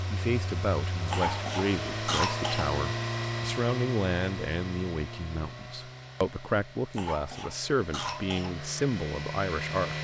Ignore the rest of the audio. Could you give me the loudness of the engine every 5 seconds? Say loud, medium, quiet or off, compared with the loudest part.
loud, medium.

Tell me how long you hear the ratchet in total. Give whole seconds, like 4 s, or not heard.
not heard.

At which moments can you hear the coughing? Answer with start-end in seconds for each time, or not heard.
1.1-2.6, 6.9-8.6.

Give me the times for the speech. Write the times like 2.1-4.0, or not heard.
0.1-10.0.